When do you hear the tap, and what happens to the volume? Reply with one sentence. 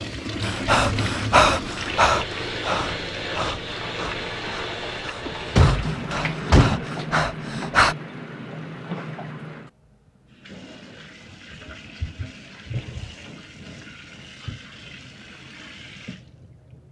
You can hear the tap from 0.0 to 16.8 s, getting quieter.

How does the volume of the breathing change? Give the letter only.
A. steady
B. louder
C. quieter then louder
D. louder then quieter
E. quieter
C.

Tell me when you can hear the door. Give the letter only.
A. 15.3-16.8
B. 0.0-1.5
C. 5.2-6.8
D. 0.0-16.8
C.